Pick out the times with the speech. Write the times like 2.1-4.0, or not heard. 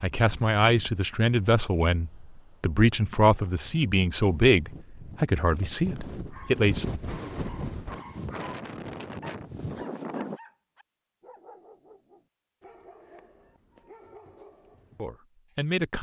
0.0-6.9, 14.9-15.9.